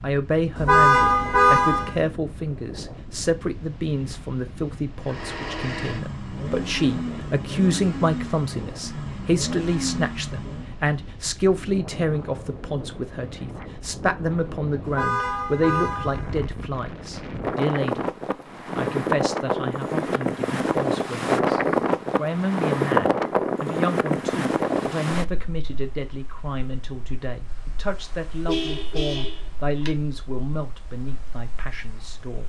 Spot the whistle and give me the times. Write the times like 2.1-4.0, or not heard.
not heard.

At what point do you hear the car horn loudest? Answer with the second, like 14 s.
1 s.